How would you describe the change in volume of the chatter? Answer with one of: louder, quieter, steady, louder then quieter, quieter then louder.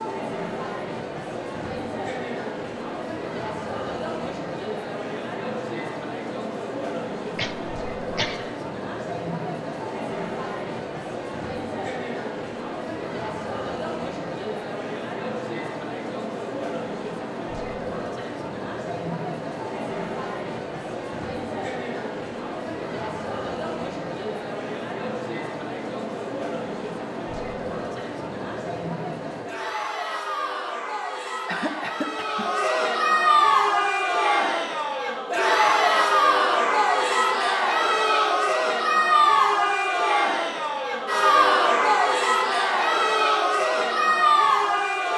louder.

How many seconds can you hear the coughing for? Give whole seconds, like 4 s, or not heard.
2 s.